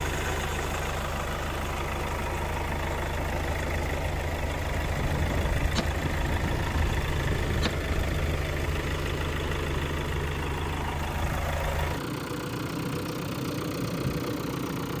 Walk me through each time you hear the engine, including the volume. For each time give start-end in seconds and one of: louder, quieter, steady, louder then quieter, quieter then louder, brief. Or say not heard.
0.0-14.9 steady.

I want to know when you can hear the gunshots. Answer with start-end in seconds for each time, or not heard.
5.0-8.4.